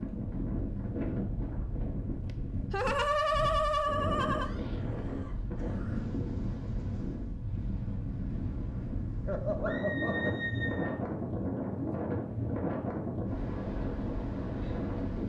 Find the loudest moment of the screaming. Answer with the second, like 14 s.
10 s.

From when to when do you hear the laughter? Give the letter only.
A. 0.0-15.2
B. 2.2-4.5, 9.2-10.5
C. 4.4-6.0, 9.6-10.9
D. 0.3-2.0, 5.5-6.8
B.